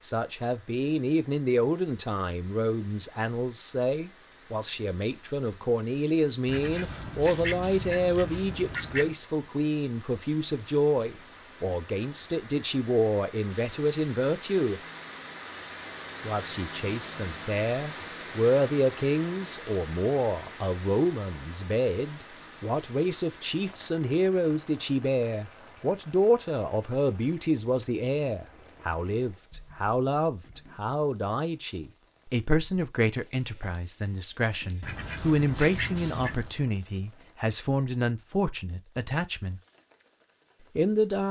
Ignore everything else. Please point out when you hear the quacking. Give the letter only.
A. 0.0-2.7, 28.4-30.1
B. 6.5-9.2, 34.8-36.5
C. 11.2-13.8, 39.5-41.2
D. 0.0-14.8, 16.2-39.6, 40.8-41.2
B.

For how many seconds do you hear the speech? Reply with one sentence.
You can hear the speech for 39 seconds altogether.